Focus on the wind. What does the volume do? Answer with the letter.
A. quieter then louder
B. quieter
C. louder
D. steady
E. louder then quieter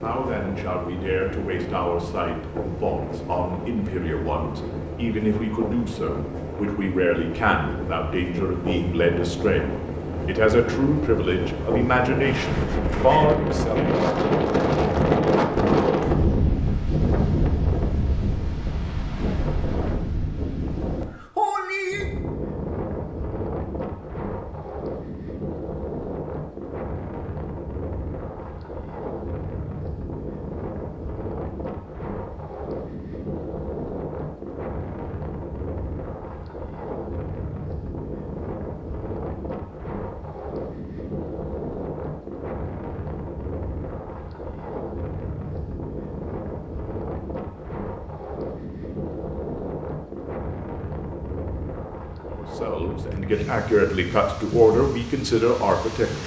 E.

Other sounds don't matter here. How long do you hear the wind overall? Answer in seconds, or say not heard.
56 s.